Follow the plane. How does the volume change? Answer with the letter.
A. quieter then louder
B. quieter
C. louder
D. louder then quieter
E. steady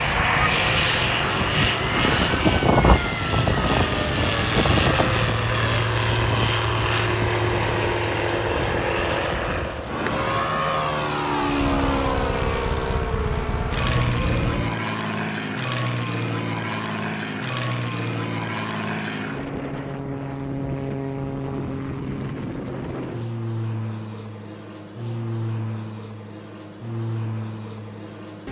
B.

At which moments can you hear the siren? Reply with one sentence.
You can hear the siren from 0.0 to 6.0 s and from 11.6 to 14.6 s.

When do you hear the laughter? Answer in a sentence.
The laughter can't be heard in this clip.